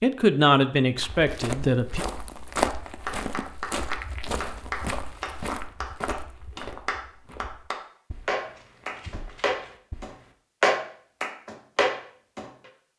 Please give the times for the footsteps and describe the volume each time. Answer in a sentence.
The footsteps can be heard from 0.9 to 10.3 s, getting quieter.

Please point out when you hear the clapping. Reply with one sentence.
You can hear the clapping from 2.5 to 12.7 s.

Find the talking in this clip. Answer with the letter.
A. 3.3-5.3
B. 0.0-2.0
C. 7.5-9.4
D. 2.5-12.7
B.